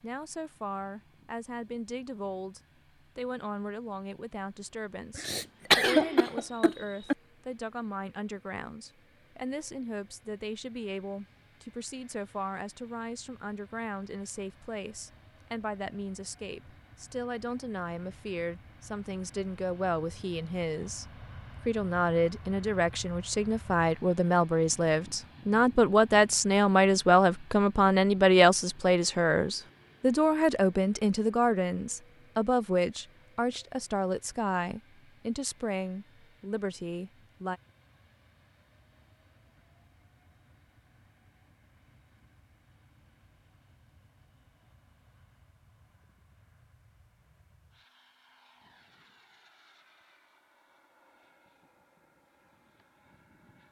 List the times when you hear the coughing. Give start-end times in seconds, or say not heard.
5.2-7.2.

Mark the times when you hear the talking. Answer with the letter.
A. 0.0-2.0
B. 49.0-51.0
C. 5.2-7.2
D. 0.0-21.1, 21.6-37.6
D.